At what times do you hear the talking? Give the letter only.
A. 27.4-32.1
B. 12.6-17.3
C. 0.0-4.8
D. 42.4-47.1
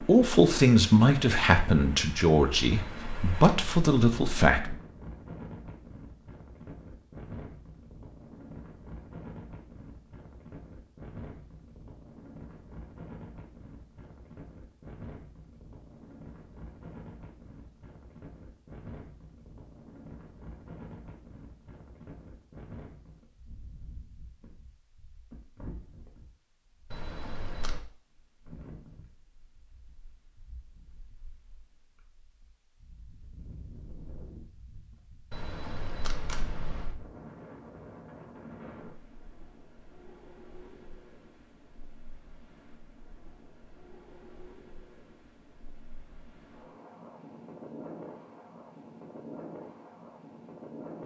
C.